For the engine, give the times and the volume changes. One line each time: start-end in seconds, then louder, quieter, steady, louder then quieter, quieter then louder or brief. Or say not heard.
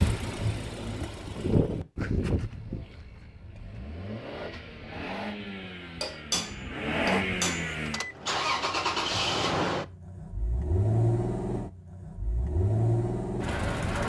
0.0-14.0 quieter then louder.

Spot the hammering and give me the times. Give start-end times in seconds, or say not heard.
6.0-7.8.